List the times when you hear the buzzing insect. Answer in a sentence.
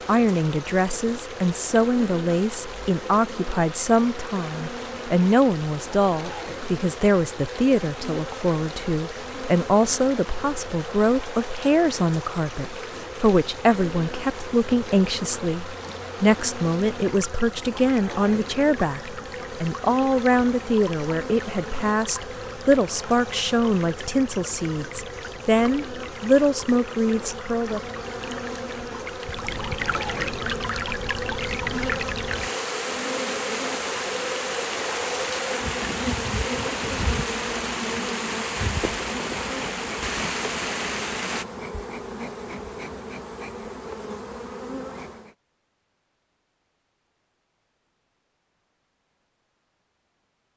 The buzzing insect can be heard from 0.0 to 45.4 s.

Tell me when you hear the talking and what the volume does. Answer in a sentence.
You can hear the talking from 0.1 to 27.8 s, at a steady volume.